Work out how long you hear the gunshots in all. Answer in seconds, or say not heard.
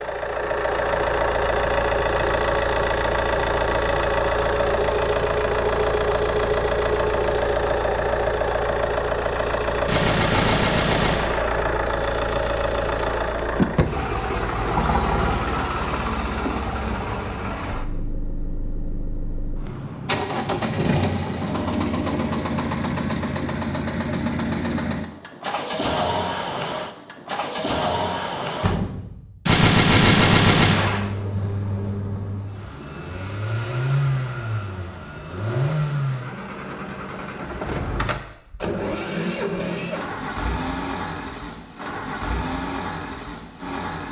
3 s.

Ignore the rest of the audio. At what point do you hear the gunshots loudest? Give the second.
30 s.